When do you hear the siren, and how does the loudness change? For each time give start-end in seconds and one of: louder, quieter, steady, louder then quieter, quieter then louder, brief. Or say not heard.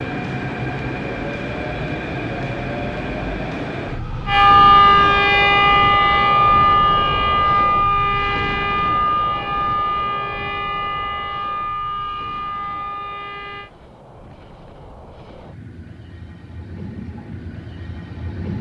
4.2-13.7 quieter.